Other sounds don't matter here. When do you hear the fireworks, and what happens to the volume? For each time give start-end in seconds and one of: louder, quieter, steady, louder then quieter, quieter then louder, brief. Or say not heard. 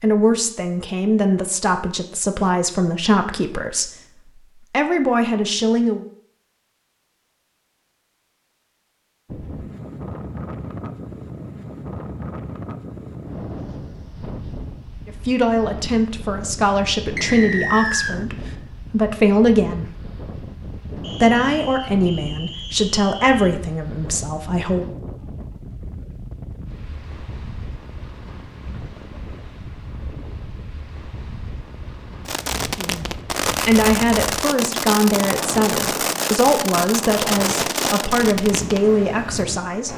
32.2-38.9 steady.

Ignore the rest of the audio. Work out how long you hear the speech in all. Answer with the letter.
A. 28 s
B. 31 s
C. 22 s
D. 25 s
C.